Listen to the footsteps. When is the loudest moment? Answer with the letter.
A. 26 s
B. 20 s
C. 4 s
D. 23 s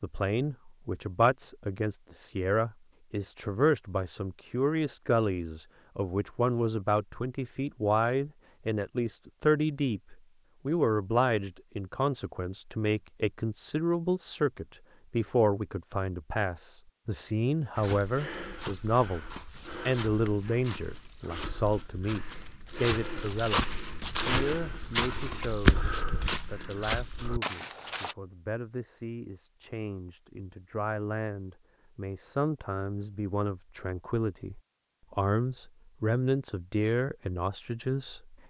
A.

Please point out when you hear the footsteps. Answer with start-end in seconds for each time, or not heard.
17.8-28.1.